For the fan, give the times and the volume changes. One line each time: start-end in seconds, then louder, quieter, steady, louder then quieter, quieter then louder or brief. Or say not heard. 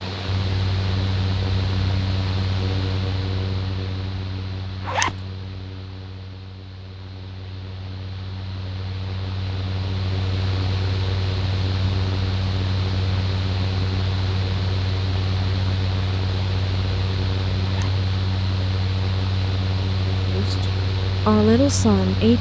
0.0-22.3 quieter then louder.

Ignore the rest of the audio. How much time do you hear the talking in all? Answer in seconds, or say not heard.
2 s.